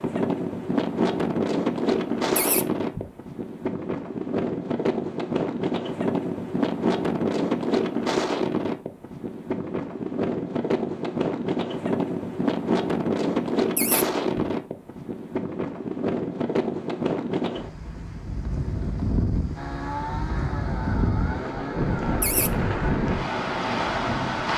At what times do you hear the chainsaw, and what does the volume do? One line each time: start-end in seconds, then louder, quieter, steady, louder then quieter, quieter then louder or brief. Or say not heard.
19.6-24.5 steady.